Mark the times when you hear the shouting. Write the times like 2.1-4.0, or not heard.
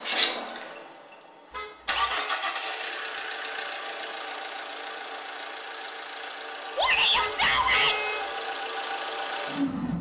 6.8-8.0.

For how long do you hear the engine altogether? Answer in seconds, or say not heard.
10 s.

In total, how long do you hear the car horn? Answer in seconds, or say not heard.
2 s.